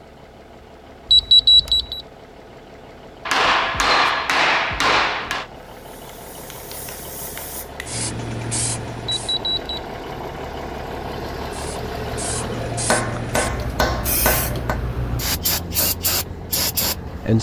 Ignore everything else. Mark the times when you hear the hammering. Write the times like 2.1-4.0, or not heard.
3.2-5.5, 12.8-14.8.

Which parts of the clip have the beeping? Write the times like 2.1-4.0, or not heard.
1.1-2.0, 9.2-9.8.